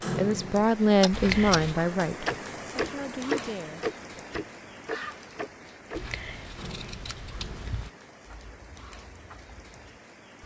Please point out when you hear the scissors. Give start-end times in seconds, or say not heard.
1.1-1.8, 6.0-7.9.